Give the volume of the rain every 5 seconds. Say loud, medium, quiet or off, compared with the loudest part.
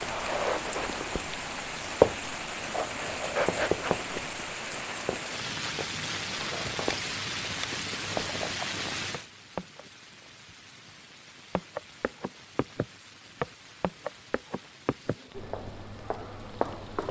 loud, loud, quiet, quiet.